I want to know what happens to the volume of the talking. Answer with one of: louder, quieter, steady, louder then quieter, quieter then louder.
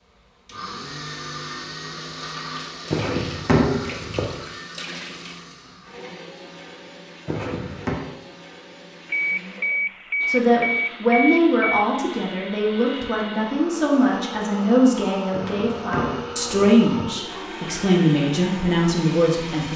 steady.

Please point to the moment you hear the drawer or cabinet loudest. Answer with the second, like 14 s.
4 s.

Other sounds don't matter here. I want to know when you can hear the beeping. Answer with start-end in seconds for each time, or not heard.
9.1-11.8.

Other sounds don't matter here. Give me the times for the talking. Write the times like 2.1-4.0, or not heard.
10.2-19.7.